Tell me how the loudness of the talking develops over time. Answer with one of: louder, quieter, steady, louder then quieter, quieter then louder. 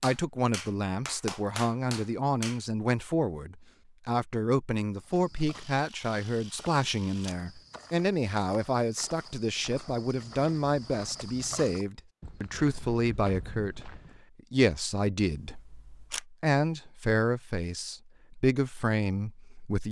steady.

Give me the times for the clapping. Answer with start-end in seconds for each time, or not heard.
0.0-2.6.